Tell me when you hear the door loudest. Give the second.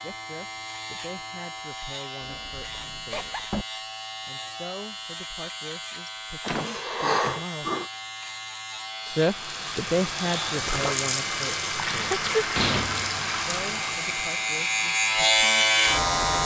13 s.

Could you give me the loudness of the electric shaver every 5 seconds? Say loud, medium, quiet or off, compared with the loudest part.
quiet, quiet, medium, loud.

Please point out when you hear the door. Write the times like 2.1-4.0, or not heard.
2.2-3.6, 6.4-7.5, 11.8-13.3.